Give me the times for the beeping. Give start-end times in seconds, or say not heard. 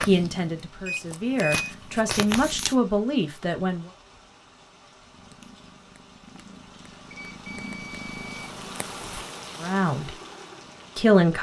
0.8-1.7, 7.1-8.6.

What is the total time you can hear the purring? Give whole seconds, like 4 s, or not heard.
9 s.